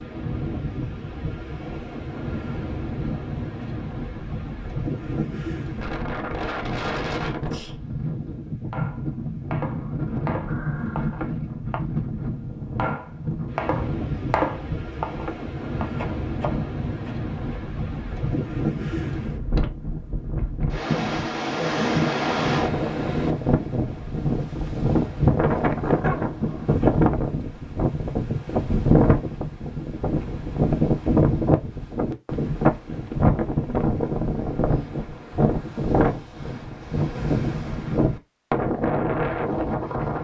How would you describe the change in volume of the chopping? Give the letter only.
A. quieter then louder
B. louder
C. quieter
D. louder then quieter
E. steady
D.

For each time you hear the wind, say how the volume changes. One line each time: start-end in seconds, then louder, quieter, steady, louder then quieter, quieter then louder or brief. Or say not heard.
0.0-40.1 louder.